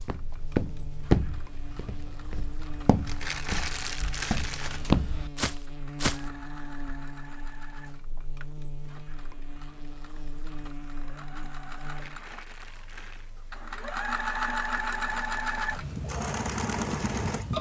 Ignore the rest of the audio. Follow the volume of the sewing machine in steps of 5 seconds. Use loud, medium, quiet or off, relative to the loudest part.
quiet, quiet, medium, loud.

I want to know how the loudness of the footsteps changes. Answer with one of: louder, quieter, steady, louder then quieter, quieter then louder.
quieter then louder.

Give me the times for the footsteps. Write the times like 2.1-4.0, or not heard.
0.0-6.2.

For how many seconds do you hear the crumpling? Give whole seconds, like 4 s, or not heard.
3 s.